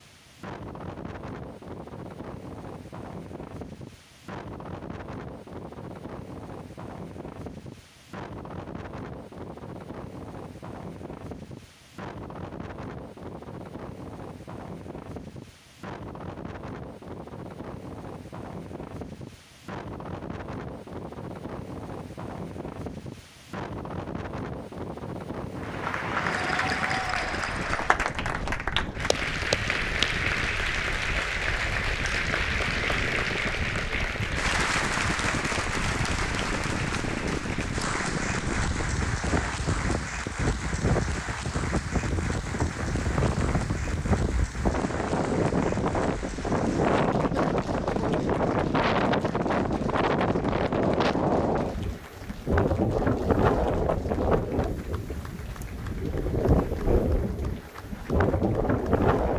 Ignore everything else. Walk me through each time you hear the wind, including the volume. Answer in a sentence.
You can hear the wind from 0.0 to 59.3 s, getting louder.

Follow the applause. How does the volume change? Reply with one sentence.
The volume of the applause goes down.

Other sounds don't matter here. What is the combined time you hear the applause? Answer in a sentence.
You can hear the applause for 34 seconds altogether.